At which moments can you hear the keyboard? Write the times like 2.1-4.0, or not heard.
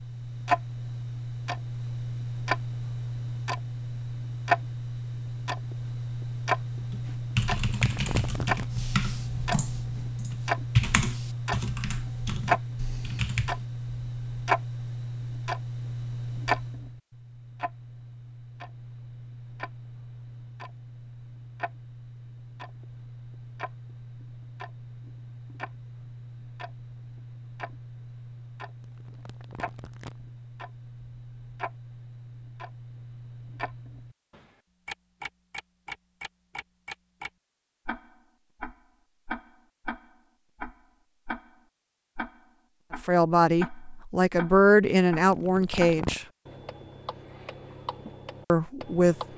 6.8-13.6.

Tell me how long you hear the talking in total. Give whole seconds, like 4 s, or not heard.
4 s.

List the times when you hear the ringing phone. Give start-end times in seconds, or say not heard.
not heard.